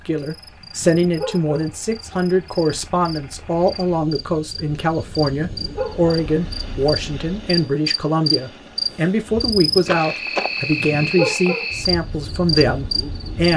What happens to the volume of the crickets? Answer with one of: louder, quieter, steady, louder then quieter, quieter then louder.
louder.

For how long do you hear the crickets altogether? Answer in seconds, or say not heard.
13 s.